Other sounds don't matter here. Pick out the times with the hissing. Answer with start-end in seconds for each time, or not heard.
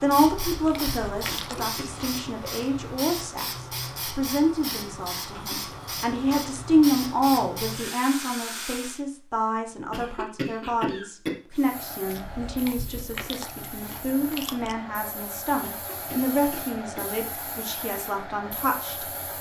0.0-9.0, 11.5-19.3.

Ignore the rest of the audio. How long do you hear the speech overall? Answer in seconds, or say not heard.
19 s.